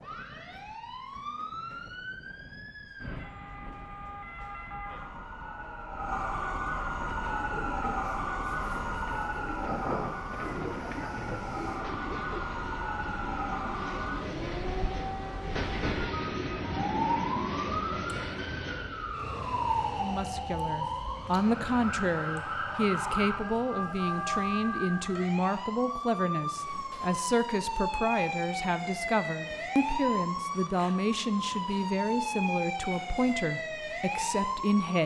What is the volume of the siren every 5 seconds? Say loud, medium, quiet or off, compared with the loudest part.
medium, loud, loud, loud, loud, loud, loud.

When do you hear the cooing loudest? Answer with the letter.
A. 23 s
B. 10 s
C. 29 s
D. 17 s
B.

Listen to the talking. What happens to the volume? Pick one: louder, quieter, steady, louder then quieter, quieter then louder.
steady.